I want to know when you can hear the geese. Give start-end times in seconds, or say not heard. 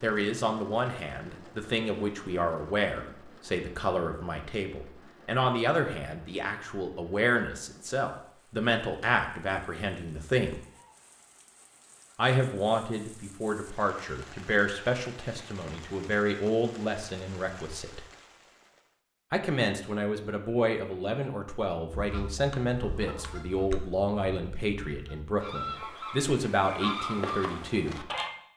21.9-28.3.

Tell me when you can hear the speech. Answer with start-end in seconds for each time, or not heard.
0.0-10.6, 12.2-18.1, 19.3-28.1.